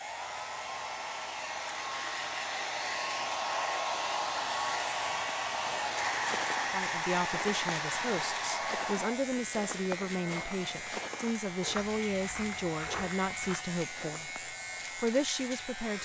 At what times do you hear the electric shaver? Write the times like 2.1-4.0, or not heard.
0.0-16.0.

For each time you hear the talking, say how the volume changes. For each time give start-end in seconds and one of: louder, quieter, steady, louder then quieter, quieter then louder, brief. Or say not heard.
6.6-16.0 steady.